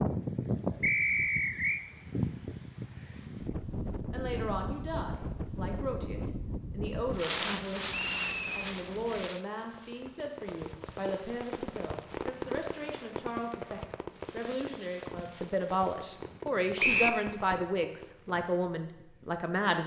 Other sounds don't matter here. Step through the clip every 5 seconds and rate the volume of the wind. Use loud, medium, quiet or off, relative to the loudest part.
loud, loud, quiet, quiet.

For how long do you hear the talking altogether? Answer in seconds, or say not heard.
16 s.